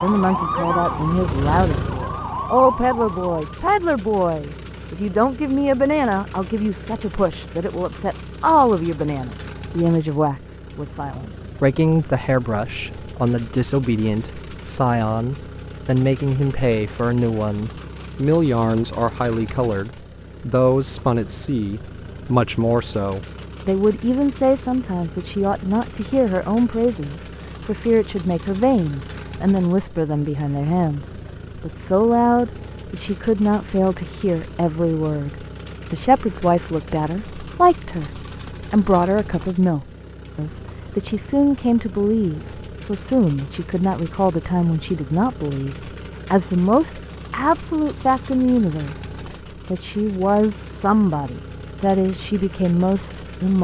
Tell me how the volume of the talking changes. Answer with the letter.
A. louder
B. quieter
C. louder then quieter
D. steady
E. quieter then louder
D.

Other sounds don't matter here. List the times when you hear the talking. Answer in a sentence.
The talking can be heard from 0.0 to 49.0 s and from 49.7 to 53.6 s.